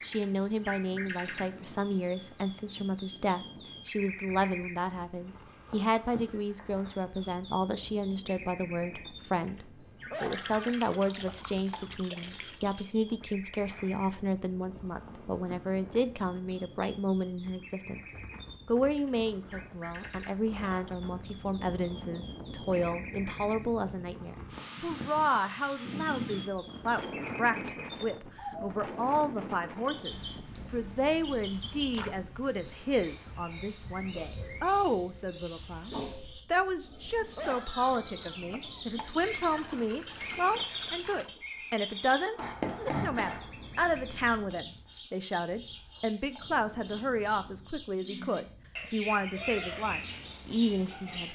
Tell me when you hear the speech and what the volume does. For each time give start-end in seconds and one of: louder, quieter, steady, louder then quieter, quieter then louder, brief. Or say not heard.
0.0-18.0 steady
18.6-51.3 steady.